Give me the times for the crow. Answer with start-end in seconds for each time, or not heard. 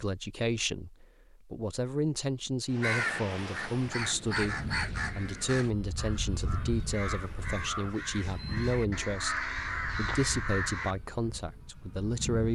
2.8-10.9.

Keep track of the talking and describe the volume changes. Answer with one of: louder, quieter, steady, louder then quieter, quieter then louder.
steady.